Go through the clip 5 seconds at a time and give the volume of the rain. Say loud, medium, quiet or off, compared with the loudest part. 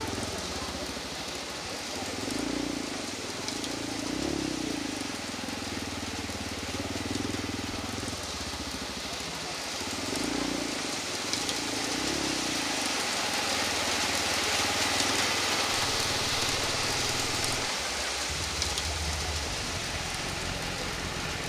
medium, medium, loud, loud, medium.